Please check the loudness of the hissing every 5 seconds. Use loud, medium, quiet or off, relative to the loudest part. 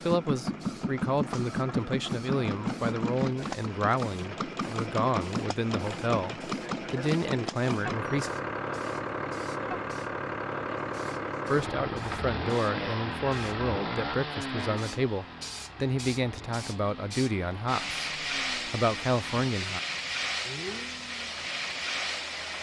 quiet, quiet, quiet, loud, loud.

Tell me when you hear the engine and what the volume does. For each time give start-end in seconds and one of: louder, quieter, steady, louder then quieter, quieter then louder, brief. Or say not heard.
0.0-22.5 quieter.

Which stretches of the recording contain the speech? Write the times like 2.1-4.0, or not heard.
0.1-8.3, 11.5-19.8.